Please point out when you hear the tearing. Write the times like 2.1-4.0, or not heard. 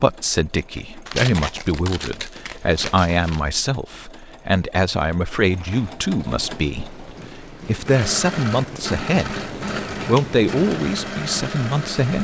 1.1-3.5.